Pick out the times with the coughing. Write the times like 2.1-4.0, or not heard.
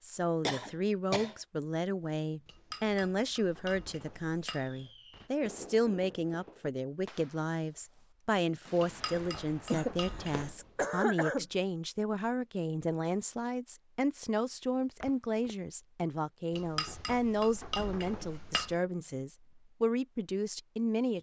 0.5-1.4, 9.7-11.4, 15.0-15.6.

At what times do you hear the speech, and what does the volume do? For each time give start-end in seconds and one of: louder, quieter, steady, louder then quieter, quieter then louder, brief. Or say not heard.
0.0-21.1 steady.